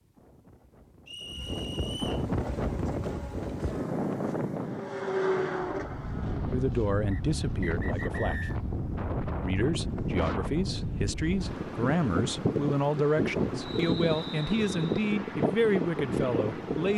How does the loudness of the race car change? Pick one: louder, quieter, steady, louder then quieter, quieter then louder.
louder then quieter.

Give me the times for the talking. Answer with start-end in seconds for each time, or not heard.
6.5-8.4, 9.4-16.9.